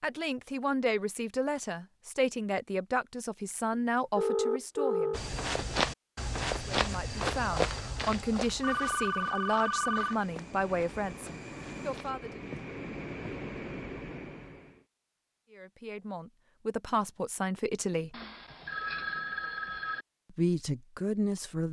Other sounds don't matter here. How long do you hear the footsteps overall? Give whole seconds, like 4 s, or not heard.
8 s.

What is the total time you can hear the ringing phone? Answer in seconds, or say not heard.
5 s.